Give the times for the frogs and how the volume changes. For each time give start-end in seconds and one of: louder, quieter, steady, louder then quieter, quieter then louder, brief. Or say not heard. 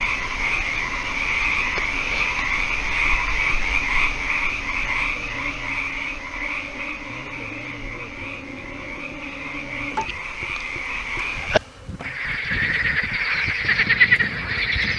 0.0-14.9 quieter then louder.